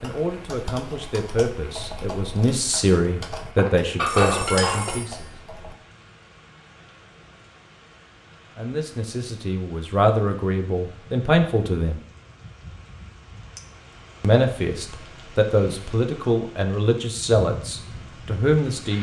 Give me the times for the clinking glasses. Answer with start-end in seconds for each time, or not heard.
3.5-5.0.